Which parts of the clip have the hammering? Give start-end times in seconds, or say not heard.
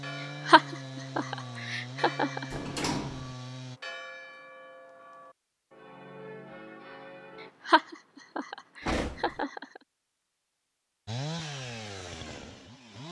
not heard.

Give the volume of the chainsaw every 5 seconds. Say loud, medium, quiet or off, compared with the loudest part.
loud, off, loud.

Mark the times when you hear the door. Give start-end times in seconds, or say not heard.
2.5-3.4, 8.8-9.4.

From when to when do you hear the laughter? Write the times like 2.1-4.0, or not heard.
0.5-2.5, 7.7-9.8.